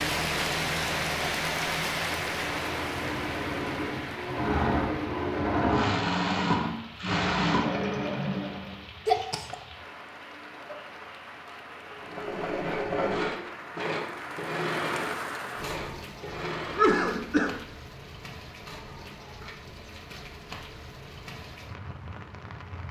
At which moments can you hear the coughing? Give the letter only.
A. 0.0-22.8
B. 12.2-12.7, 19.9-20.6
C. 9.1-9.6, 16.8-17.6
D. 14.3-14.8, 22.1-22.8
C.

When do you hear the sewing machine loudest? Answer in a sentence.
The loudest moment of the sewing machine is at 6 seconds.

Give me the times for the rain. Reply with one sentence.
The rain can be heard from 0.0 to 22.8 s.